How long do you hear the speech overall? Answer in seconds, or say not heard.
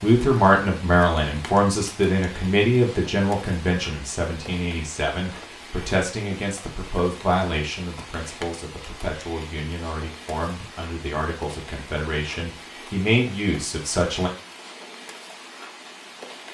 14 s.